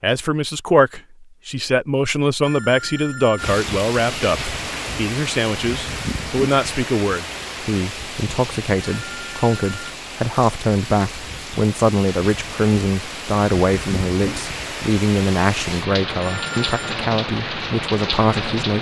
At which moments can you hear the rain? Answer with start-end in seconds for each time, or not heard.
3.4-18.7.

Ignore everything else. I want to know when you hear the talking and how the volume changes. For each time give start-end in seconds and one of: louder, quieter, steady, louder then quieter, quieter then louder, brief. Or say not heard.
0.0-18.7 steady.